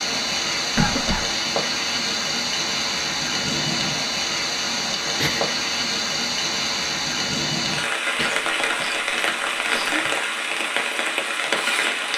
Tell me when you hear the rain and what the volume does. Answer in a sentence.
The rain can be heard from 0.0 to 12.1 s, at a steady volume.